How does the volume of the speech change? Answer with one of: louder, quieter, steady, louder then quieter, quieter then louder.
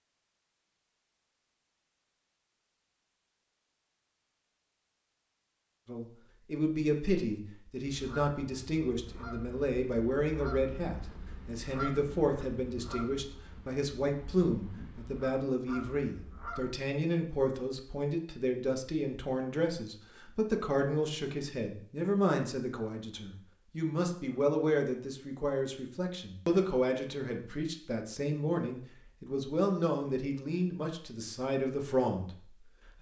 steady.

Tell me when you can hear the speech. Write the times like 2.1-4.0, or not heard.
5.8-32.9.